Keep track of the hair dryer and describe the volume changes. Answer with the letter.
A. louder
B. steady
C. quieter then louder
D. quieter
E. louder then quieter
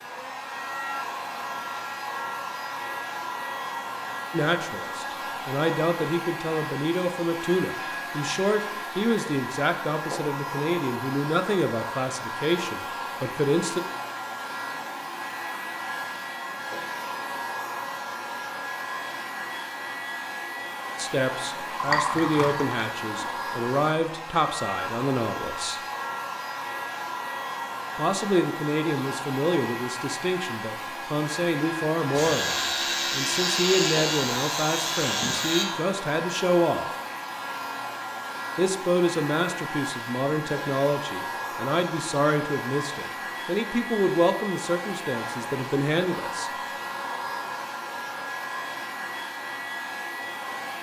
B.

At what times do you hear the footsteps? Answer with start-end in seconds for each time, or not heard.
not heard.